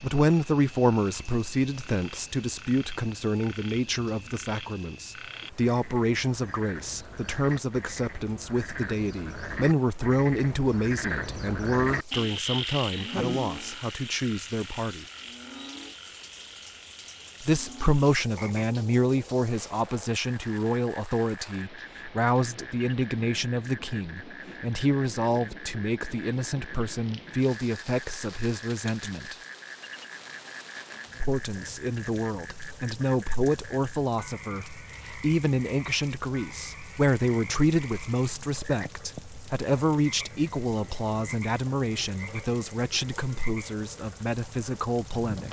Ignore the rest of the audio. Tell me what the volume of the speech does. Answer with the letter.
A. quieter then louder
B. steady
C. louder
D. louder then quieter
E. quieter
B.